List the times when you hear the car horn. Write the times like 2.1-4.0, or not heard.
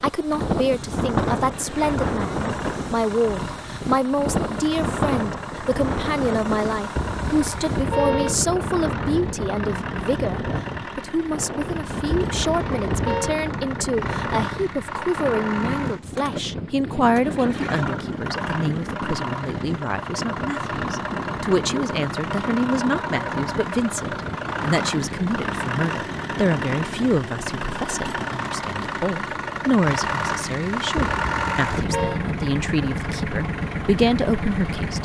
7.0-8.3, 12.1-13.4, 30.9-32.2.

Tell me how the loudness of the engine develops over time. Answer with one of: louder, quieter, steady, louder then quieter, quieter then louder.
louder.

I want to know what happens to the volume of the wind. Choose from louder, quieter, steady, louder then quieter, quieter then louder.
quieter.